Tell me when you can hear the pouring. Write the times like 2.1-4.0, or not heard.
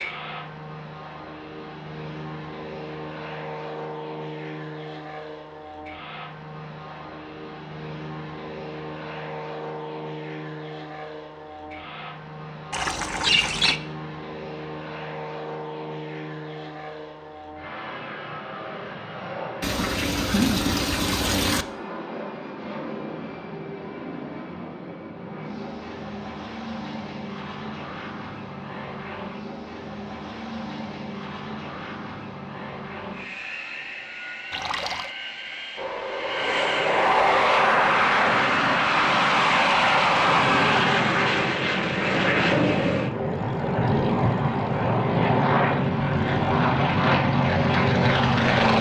12.7-13.8, 19.6-21.6, 34.5-35.1.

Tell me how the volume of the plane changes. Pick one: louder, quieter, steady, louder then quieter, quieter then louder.
louder.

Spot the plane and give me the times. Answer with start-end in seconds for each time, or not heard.
0.0-48.7.